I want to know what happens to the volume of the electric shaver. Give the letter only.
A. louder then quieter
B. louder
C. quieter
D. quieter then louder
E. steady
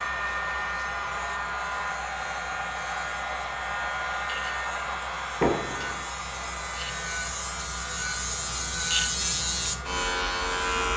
B.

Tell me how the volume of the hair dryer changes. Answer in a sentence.
The loudness of the hair dryer goes down.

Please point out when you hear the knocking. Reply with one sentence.
The knocking can be heard from 5.4 to 6.0 s.